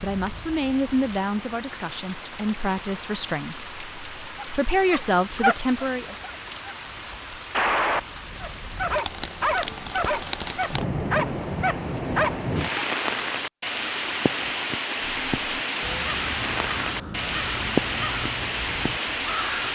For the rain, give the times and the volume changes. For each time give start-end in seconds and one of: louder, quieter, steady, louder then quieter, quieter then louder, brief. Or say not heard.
0.0-19.6 louder.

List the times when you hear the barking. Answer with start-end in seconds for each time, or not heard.
4.3-6.8, 7.5-12.8.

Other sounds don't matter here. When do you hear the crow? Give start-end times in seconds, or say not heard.
15.0-19.6.